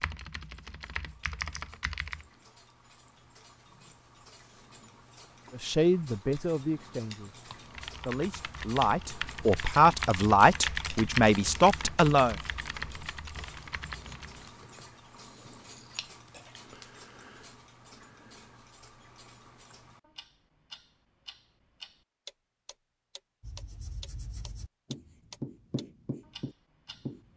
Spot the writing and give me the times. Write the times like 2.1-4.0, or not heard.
23.4-27.3.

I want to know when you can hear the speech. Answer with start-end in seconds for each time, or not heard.
5.5-12.3.